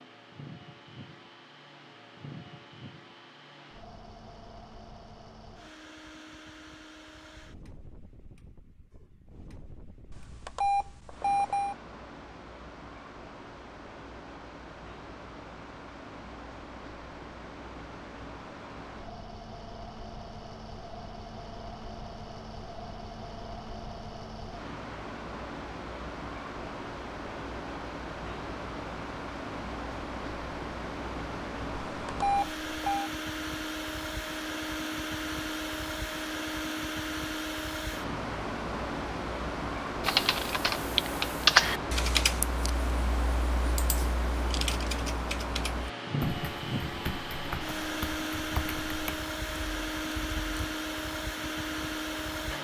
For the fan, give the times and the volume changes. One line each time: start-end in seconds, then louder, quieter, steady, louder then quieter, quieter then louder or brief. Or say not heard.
0.0-52.5 louder.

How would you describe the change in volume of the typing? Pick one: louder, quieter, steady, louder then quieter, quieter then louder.
quieter.